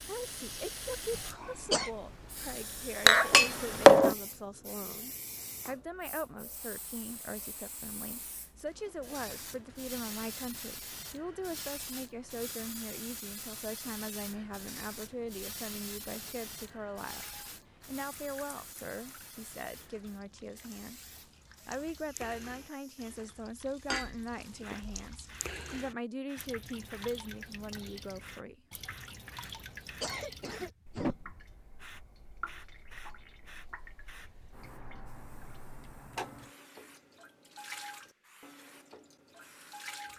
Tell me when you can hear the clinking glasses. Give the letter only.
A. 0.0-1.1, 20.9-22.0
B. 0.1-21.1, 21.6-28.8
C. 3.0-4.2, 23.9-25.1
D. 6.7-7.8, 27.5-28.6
C.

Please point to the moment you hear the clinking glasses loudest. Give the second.
4 s.